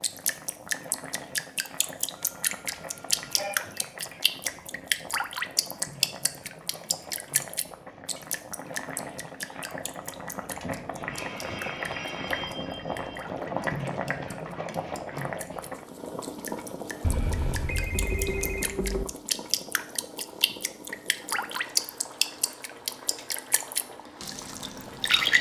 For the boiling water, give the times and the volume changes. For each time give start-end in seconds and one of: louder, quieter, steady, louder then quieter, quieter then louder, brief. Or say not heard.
0.0-25.3 louder then quieter.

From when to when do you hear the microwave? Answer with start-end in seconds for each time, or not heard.
not heard.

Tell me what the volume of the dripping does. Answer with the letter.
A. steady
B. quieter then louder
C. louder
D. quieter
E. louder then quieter
B.